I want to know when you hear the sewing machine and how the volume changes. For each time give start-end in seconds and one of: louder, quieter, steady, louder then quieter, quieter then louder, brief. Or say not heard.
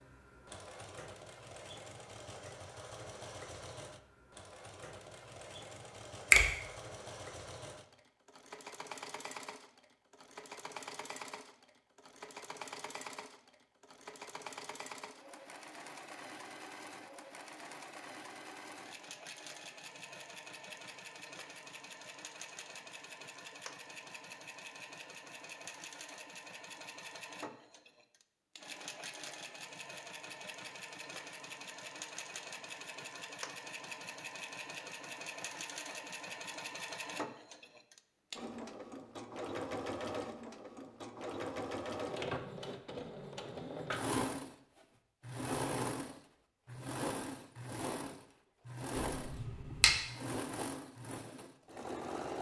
0.0-52.3 louder.